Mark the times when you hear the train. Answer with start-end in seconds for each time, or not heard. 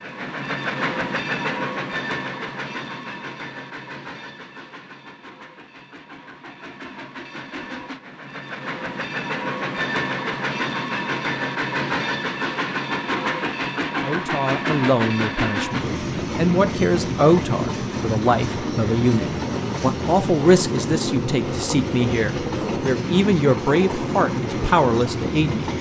0.0-25.7.